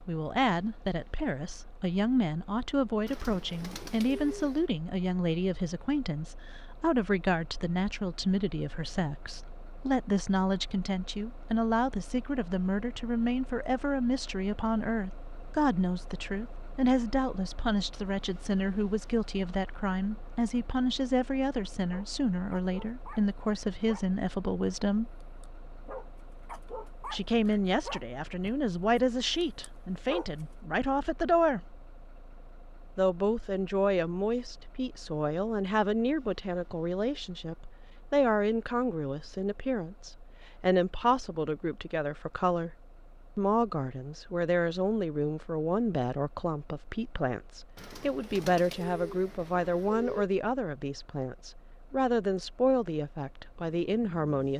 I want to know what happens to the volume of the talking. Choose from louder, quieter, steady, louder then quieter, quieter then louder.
steady.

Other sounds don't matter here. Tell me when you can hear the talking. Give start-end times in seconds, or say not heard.
0.1-25.1, 27.1-31.8, 33.0-42.7, 43.4-54.5.